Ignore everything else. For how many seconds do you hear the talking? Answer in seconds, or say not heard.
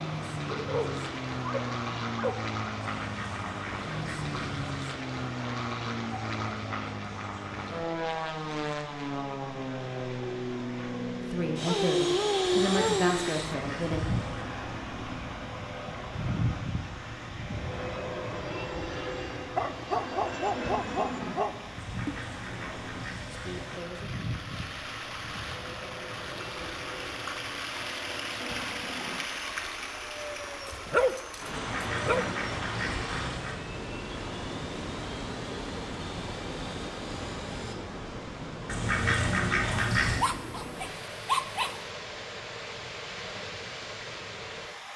4 s.